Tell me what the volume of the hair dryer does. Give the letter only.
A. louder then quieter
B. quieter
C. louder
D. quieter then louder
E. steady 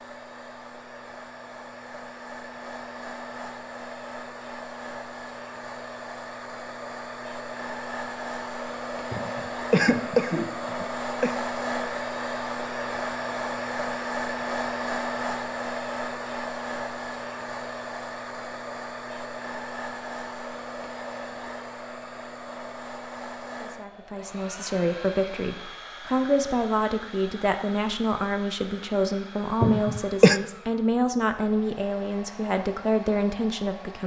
A.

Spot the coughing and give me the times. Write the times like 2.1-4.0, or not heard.
9.1-11.3, 29.6-30.4.